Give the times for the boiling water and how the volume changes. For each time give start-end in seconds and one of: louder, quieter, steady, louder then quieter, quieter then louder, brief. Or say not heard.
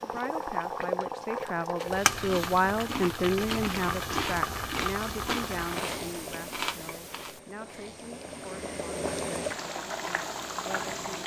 0.0-11.2 quieter then louder.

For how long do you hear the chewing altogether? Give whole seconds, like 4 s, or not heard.
6 s.